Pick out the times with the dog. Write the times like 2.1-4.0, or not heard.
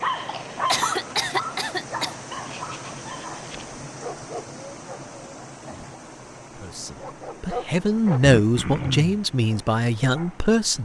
0.0-5.0, 7.0-10.4.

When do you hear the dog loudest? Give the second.
1 s.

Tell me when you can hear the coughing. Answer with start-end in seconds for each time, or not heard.
0.7-2.1, 8.3-9.2.